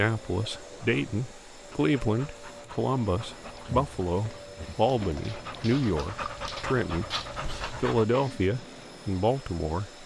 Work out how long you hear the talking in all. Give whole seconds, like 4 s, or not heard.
9 s.